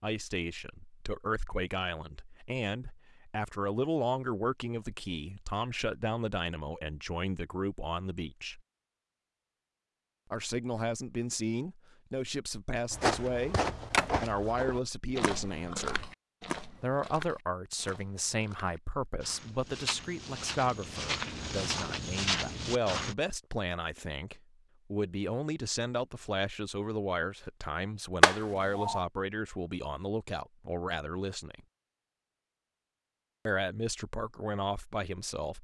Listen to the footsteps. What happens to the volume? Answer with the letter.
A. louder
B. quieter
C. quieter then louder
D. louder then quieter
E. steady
C.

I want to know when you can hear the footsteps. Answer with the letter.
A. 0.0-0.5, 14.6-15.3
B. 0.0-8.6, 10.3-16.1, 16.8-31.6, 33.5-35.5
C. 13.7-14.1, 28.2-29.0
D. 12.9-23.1
D.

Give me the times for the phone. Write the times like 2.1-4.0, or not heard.
13.7-14.1, 28.2-29.0.